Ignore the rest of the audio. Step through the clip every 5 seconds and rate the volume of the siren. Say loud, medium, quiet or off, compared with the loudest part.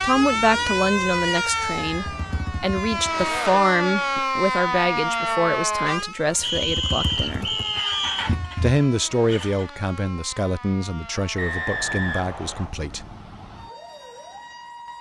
loud, medium, quiet.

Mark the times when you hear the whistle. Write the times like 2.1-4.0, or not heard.
1.4-2.2, 6.4-8.3, 11.3-12.7.